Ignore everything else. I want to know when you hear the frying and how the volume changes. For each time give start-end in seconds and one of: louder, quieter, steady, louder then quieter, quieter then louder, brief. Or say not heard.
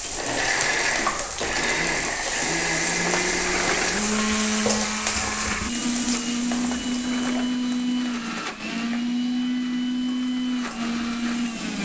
0.0-11.8 quieter.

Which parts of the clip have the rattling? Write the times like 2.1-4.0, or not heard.
3.0-4.3, 6.5-7.6.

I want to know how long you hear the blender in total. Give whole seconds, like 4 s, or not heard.
12 s.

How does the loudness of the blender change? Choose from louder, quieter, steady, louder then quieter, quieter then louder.
steady.